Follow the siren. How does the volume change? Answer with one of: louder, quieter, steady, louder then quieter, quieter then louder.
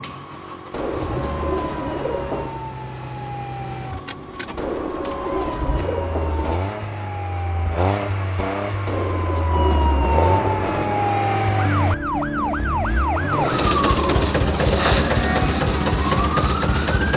louder.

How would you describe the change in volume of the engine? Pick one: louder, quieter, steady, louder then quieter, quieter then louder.
louder.